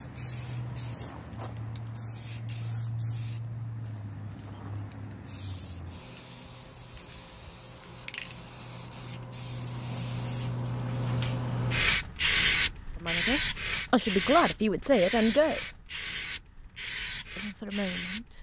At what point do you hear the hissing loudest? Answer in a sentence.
The volume of the hissing peaks at 12 seconds.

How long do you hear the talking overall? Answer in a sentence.
You can hear the talking for 4 seconds altogether.